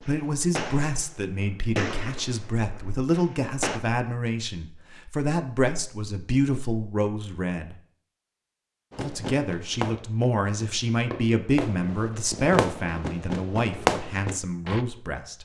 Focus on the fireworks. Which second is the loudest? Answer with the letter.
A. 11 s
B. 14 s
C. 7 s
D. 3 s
B.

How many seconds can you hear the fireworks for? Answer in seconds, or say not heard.
10 s.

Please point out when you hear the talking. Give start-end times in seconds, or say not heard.
0.1-7.8, 8.9-15.3.